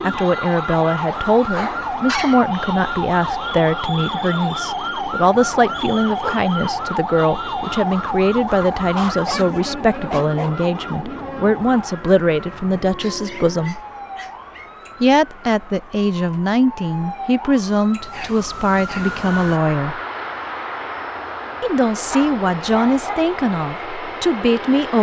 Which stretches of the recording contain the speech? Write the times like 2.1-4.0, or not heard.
0.0-13.8, 15.0-20.0, 21.6-24.9.